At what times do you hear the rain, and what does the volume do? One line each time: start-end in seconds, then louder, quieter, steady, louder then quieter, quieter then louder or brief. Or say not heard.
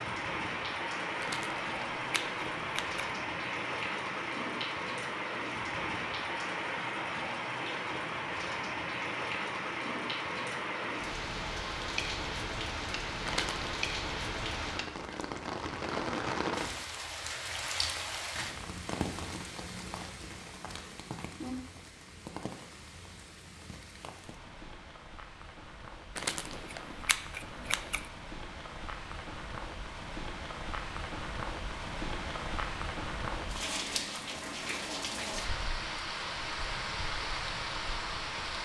0.0-38.5 quieter then louder.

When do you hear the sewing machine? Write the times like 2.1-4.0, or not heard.
not heard.